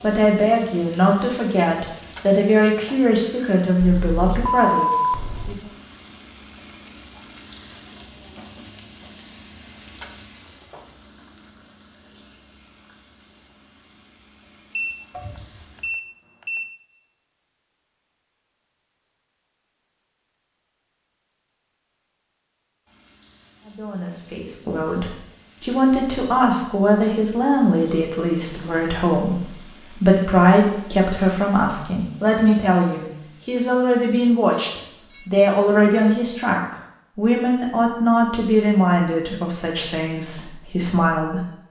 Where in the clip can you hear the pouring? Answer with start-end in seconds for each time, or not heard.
15.1-15.9.